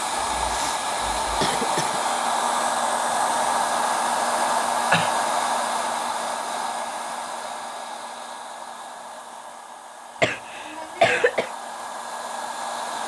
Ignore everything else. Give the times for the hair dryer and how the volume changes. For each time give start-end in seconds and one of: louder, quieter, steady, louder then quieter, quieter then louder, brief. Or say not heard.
0.0-13.0 quieter.